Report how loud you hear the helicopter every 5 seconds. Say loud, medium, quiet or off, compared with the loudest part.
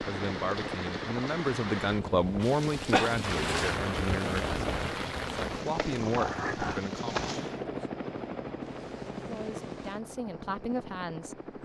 loud, loud, medium.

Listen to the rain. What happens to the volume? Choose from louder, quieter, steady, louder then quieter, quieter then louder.
louder then quieter.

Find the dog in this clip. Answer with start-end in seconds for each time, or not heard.
6.0-6.9.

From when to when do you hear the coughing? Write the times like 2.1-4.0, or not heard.
2.4-3.2.